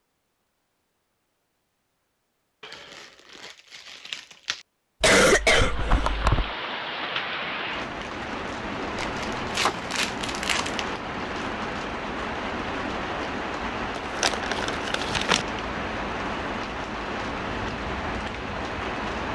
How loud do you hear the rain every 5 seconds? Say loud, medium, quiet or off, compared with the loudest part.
off, loud, loud, loud.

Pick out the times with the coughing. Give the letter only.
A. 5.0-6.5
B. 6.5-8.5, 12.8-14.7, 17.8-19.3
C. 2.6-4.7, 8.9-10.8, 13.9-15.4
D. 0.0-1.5
A.